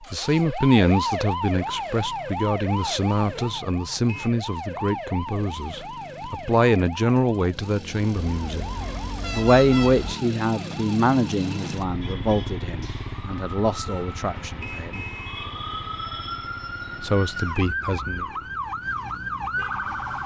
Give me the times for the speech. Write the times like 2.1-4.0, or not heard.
0.0-8.7, 9.3-15.1, 17.0-18.2.